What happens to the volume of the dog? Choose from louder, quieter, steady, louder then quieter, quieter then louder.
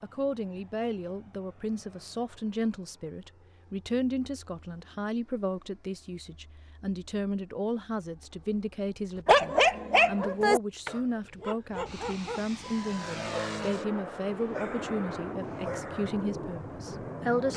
quieter.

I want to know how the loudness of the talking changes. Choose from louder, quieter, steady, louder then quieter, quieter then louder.
steady.